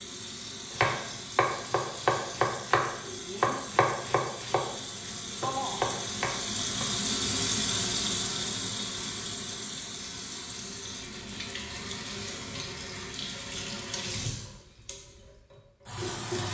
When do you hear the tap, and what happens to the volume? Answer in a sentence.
The tap can be heard from 0.0 to 16.4 s, getting louder then quieter.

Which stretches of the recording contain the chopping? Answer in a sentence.
You can hear the chopping from 0.7 to 6.8 s.